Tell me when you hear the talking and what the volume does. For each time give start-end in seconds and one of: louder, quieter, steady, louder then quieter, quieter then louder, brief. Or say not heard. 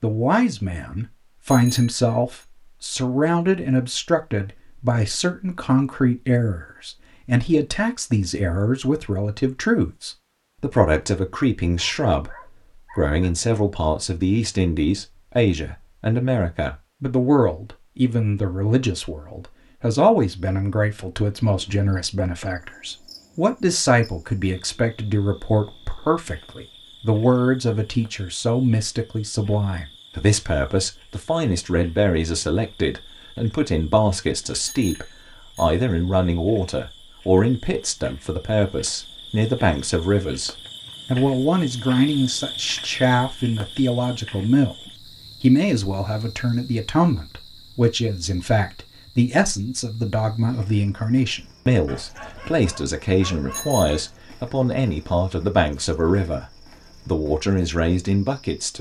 0.0-56.5 steady
57.0-58.7 brief.